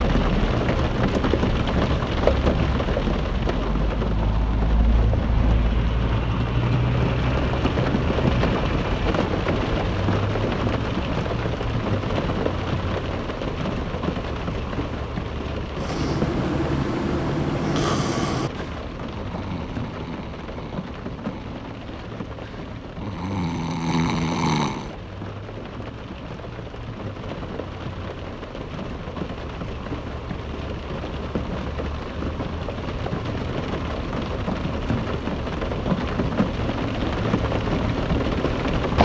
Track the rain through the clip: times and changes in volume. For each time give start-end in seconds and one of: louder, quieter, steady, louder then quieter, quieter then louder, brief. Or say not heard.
0.0-39.0 quieter then louder.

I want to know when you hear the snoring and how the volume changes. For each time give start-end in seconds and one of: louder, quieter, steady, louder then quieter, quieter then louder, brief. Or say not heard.
15.8-24.9 quieter then louder.